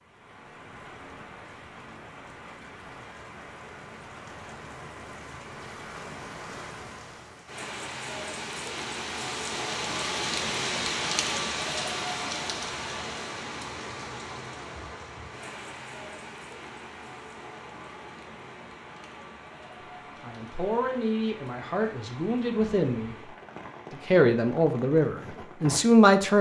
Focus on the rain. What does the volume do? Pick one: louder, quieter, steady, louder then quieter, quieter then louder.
louder then quieter.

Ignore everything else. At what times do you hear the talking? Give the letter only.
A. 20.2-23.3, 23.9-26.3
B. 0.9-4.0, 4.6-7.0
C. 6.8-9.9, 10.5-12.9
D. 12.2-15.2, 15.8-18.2
A.